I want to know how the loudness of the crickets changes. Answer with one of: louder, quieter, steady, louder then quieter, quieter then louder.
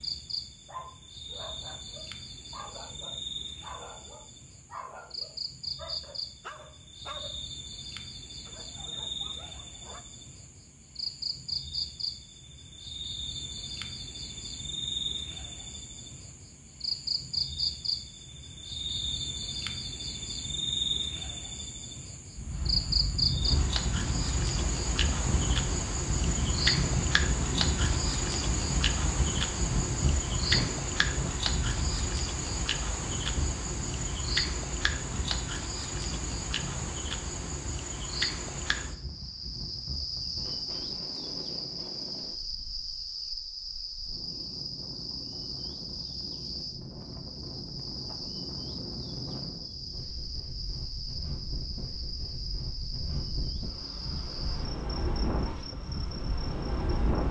louder then quieter.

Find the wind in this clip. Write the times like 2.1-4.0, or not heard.
22.3-57.2.